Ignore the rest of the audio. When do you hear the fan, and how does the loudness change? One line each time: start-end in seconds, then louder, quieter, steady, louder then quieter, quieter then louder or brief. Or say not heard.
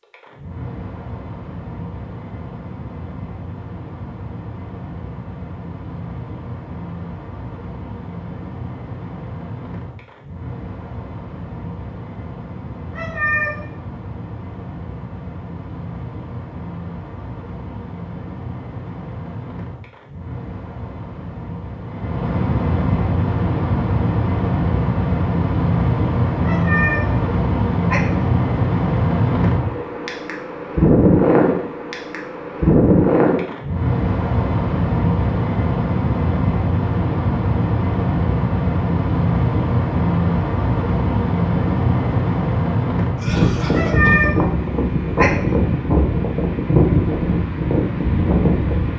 0.0-48.9 louder.